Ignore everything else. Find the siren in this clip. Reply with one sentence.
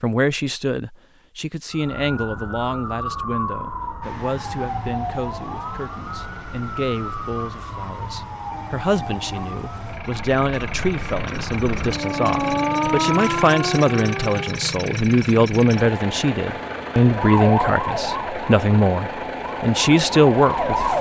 The siren can be heard from 1.7 to 14.7 s and from 17.1 to 20.9 s.